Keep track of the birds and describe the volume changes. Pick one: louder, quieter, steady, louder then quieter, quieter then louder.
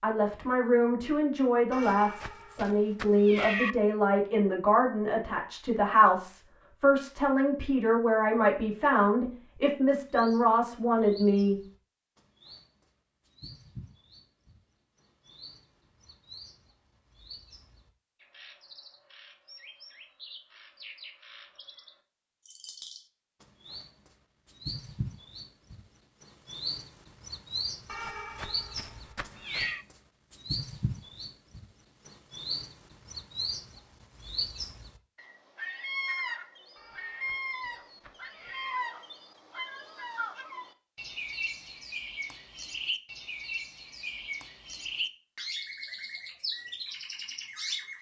louder.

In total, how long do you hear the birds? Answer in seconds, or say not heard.
38 s.